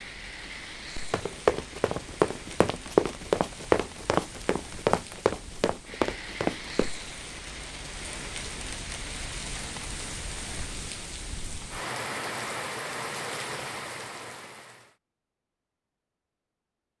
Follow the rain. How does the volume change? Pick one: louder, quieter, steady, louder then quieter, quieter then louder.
louder.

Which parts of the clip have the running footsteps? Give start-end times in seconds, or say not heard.
1.1-6.9.